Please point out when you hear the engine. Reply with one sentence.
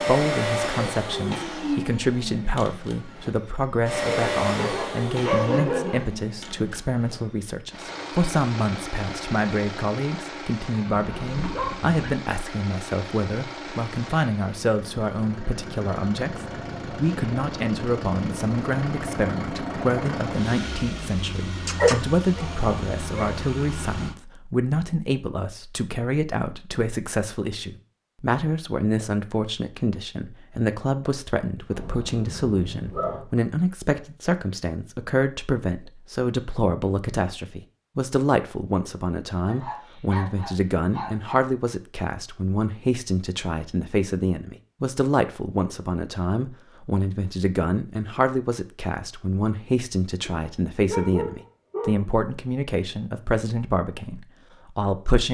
The engine can be heard from 0.0 to 24.1 s.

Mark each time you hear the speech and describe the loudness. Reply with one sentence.
The speech can be heard from 0.0 to 55.2 s, at a steady volume.